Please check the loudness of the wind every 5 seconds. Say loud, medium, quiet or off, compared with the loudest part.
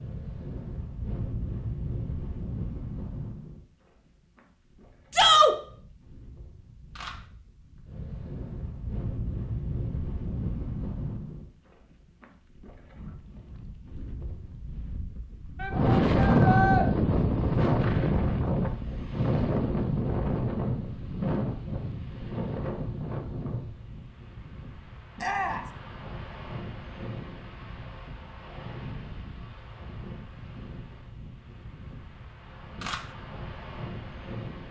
quiet, quiet, quiet, loud, medium, quiet, quiet.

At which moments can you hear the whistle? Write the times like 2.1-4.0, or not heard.
not heard.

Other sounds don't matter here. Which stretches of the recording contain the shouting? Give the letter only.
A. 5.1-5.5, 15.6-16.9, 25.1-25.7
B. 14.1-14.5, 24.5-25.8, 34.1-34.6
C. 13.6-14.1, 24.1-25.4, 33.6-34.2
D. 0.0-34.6
A.